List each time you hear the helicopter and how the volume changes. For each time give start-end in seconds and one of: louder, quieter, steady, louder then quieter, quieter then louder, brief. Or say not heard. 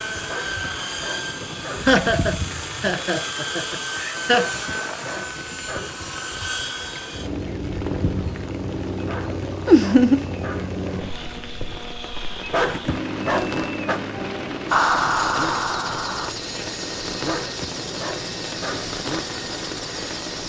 0.0-20.4 steady.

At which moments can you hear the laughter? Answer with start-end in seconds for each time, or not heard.
1.8-4.5, 9.7-10.2, 14.7-16.3.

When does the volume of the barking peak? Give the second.
13 s.